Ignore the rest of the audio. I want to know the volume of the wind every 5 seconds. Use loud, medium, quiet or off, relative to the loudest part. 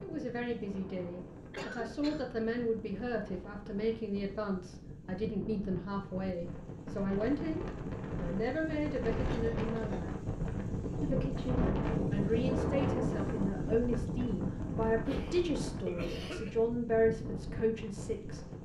quiet, medium, loud, medium.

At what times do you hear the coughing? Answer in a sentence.
The coughing can be heard from 1.5 to 2.3 s, from 9.3 to 10.5 s and from 15.1 to 16.6 s.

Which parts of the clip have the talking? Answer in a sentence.
The talking can be heard from 0.0 to 10.2 s and from 11.0 to 18.4 s.